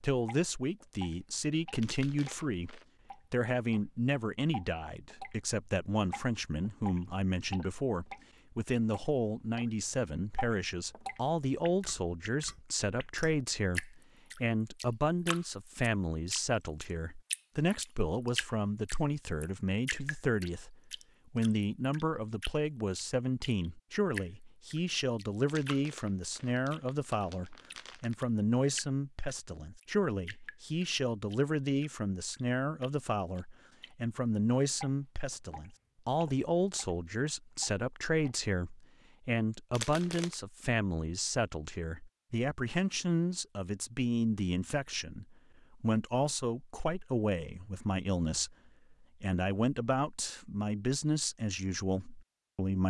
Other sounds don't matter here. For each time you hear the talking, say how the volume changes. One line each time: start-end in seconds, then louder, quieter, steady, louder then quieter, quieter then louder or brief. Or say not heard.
0.0-52.8 steady.